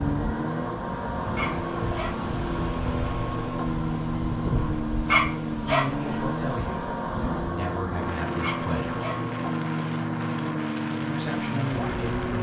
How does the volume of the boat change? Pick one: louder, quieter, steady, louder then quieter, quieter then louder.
steady.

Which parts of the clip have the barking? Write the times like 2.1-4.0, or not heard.
1.4-2.1, 5.0-6.0, 8.4-9.2.